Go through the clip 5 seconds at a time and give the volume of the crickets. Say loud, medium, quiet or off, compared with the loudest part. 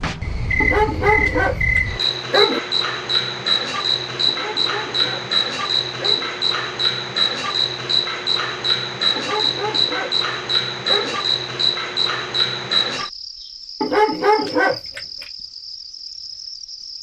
loud, loud, loud, quiet.